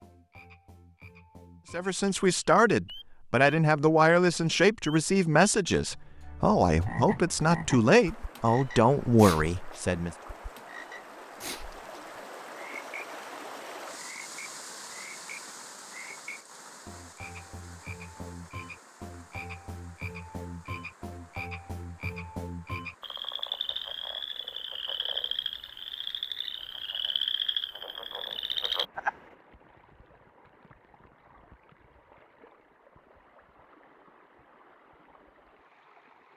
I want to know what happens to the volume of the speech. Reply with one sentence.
The loudness of the speech stays about the same.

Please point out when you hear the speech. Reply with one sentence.
The speech can be heard from 1.7 to 10.2 s.